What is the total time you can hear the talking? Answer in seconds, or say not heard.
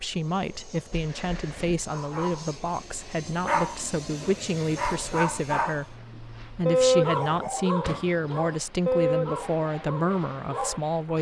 11 s.